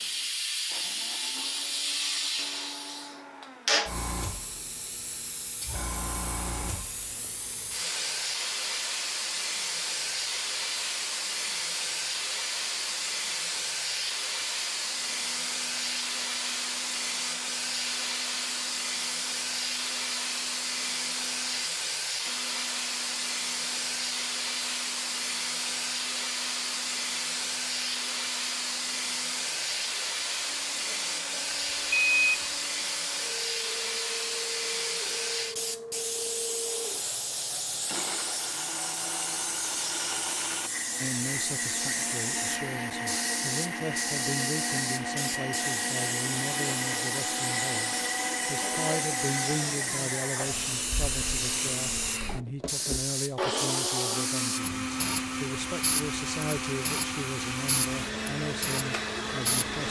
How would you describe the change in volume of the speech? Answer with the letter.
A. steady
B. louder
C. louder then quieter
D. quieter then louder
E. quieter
A.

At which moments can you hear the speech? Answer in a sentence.
You can hear the speech from 41.0 to 59.8 s.